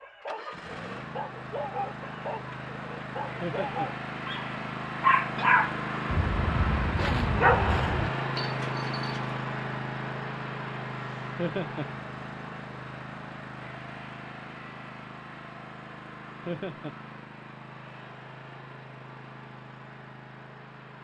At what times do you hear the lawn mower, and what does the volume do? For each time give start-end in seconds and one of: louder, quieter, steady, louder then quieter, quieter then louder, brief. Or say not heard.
0.0-20.9 louder then quieter.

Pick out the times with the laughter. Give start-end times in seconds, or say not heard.
3.4-3.9, 11.3-11.8, 16.4-16.9.